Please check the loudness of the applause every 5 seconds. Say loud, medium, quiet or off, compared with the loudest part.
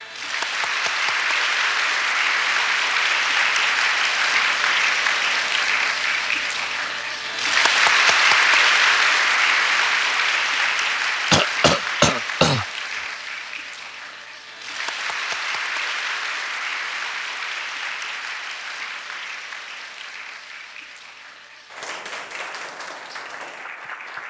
loud, loud, medium, medium, quiet.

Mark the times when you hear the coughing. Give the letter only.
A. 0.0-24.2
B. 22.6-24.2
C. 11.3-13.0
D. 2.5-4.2
C.